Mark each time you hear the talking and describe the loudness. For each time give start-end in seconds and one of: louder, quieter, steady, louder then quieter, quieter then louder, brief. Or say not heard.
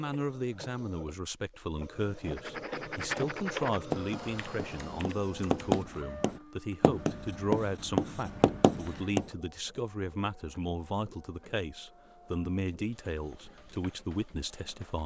0.0-15.0 steady.